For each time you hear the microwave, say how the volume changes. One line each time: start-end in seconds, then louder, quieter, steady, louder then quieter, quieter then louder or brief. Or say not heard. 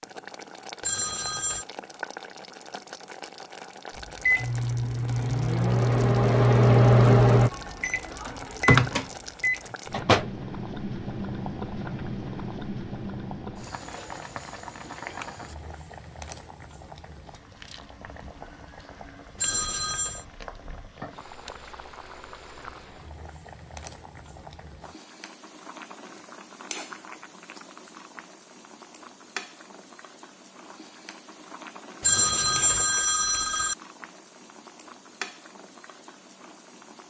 4.0-10.3 louder then quieter.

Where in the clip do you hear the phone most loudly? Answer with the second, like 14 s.
32 s.